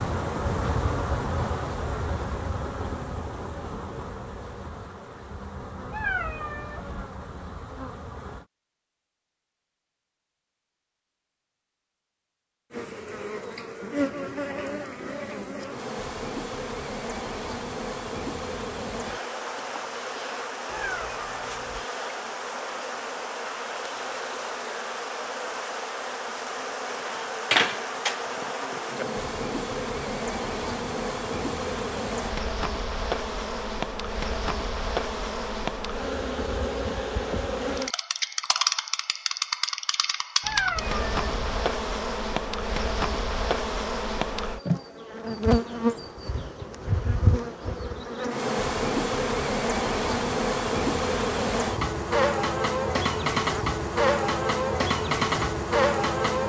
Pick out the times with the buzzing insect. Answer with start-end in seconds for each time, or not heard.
0.0-8.4, 12.7-56.4.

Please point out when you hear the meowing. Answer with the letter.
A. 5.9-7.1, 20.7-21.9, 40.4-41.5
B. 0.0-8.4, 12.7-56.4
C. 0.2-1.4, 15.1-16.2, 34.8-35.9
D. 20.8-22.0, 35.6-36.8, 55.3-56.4
A.